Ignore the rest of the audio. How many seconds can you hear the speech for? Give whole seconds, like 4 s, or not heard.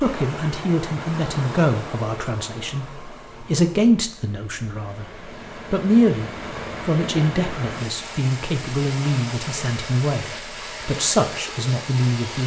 12 s.